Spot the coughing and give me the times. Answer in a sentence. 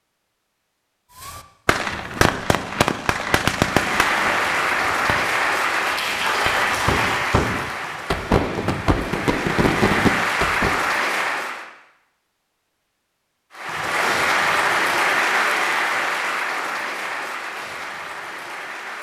You can't hear the coughing here.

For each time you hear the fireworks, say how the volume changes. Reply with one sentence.
You can hear the fireworks from 1.1 to 10.8 s, getting quieter then louder.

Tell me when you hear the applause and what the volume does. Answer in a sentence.
The applause can be heard from 3.5 to 11.7 s, getting quieter then louder; and from 13.5 to 18.9 s, getting quieter.